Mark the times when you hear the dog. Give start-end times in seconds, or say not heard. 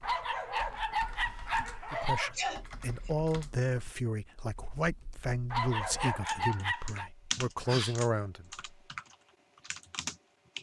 0.0-2.4, 5.5-7.1.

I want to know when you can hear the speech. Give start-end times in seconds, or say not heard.
1.9-8.7.